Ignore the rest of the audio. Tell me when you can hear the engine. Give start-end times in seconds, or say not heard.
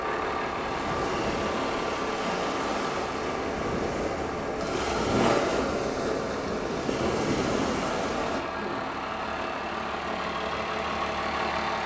0.0-11.8.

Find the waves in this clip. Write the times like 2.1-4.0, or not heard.
0.1-8.4.